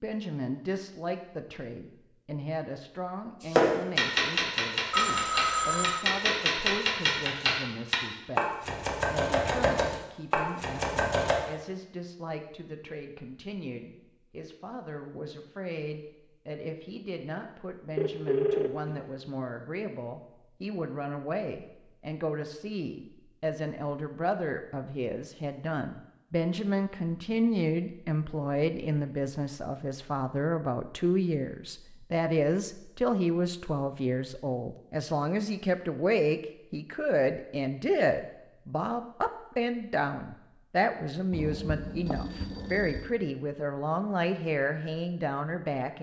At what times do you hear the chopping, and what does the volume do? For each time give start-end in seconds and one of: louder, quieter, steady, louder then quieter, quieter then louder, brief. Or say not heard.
3.4-11.3 steady.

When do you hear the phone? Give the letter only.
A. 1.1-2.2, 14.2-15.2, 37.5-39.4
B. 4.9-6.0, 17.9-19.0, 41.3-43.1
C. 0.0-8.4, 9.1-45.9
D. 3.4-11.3
B.